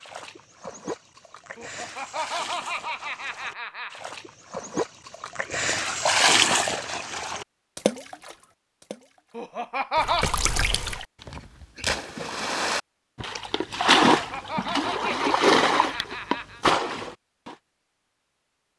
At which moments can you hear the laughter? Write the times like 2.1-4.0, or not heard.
1.6-4.0, 9.3-10.3, 14.2-16.6.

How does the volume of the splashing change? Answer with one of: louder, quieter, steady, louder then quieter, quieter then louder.
louder.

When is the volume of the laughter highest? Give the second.
10 s.